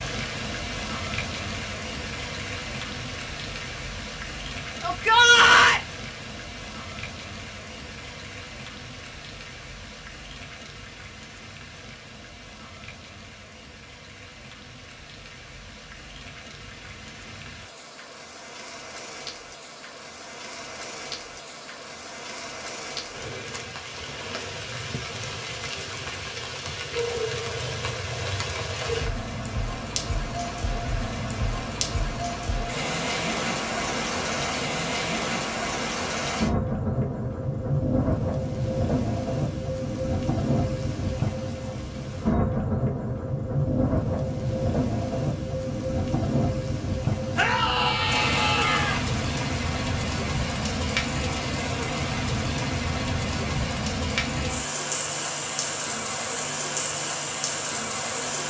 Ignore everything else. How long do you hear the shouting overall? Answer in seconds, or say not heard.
3 s.